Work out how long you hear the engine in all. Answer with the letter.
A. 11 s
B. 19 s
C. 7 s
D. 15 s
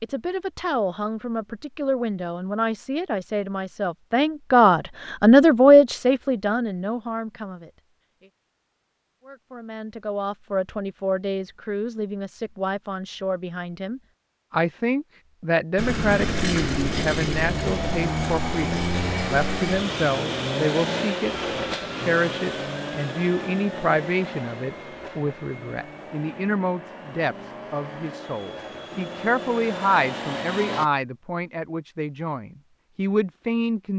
D.